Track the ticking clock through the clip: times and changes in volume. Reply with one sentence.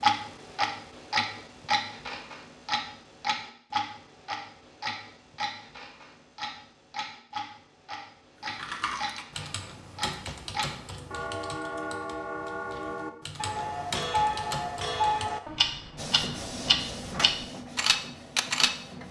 The ticking clock can be heard from 0.0 to 19.0 s, getting quieter then louder.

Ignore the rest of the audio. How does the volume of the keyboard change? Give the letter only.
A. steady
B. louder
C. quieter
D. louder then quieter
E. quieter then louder
E.